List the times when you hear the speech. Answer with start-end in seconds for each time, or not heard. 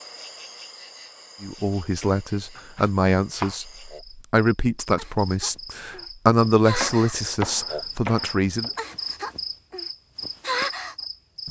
1.4-8.7.